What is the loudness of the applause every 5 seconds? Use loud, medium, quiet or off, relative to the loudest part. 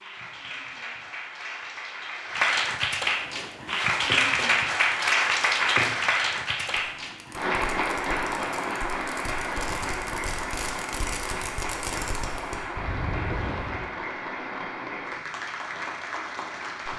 loud, loud, medium, medium.